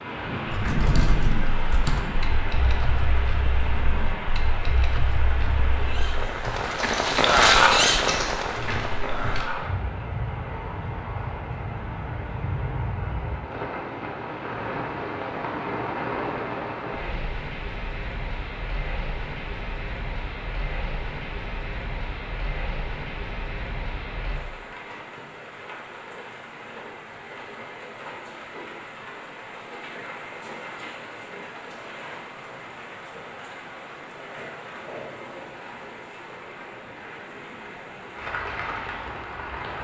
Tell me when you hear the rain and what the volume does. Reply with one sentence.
The rain can be heard from 0.0 to 39.8 s, getting quieter.